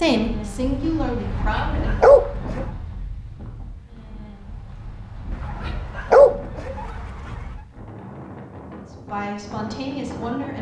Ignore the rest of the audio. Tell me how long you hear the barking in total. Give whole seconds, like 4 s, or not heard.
4 s.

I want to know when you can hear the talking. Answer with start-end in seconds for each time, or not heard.
0.0-2.0, 8.8-10.5.